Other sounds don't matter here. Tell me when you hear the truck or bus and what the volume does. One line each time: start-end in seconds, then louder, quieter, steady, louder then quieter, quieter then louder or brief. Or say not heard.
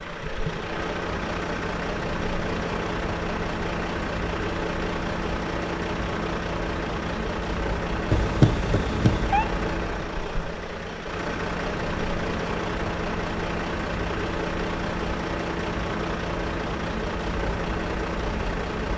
0.0-18.9 steady.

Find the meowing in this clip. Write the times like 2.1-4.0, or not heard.
8.1-9.4.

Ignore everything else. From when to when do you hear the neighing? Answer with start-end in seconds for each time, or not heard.
not heard.